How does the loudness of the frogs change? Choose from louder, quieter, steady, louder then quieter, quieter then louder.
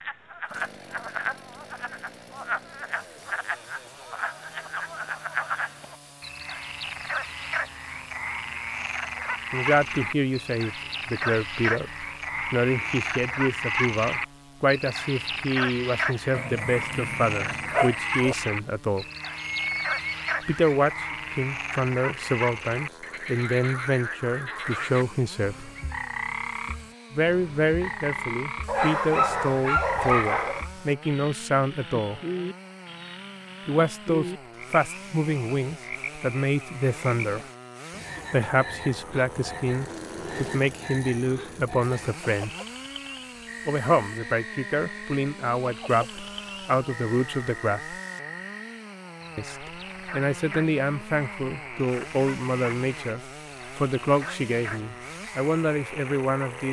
quieter.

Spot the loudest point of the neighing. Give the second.
20 s.